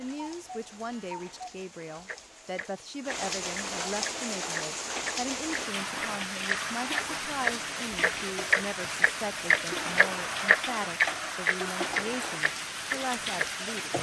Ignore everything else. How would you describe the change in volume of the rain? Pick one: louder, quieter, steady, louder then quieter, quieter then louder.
louder.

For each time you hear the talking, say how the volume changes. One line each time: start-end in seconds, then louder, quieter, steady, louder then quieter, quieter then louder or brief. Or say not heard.
0.0-13.9 steady.